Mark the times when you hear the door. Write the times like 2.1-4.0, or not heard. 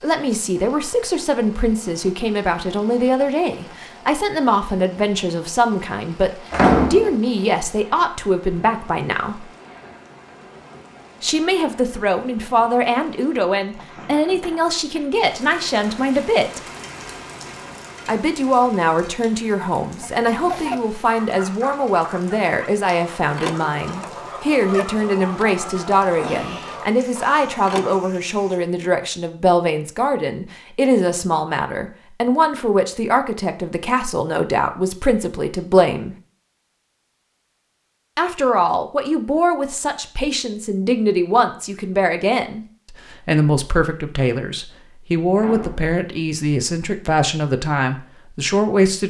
6.5-7.2, 26.1-26.6, 45.4-46.0.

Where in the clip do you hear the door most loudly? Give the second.
7 s.